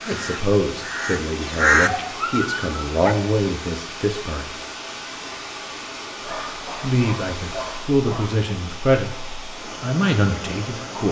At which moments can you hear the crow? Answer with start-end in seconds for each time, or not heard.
0.0-2.1.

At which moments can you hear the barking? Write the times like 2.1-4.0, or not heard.
2.0-3.1, 6.2-8.4.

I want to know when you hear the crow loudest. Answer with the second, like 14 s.
2 s.